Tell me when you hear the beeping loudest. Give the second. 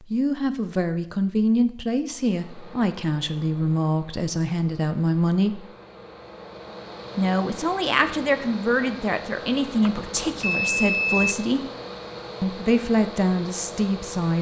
11 s.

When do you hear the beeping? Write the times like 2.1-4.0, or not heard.
9.8-11.3.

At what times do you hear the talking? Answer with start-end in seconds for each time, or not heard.
0.0-5.7, 7.2-11.6, 12.4-14.3.